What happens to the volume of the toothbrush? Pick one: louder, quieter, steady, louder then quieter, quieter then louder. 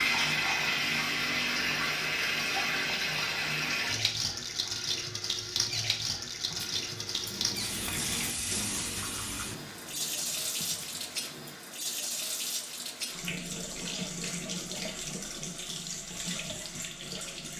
louder then quieter.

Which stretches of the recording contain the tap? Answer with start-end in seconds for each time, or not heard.
0.0-17.5.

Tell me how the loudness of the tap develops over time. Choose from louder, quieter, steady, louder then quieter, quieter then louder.
quieter.